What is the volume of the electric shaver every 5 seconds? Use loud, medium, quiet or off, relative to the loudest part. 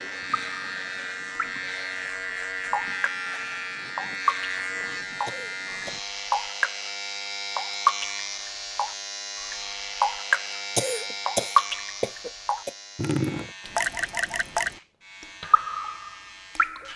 loud, loud, medium, quiet.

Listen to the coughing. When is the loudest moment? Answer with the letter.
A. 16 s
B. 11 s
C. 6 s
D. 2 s
B.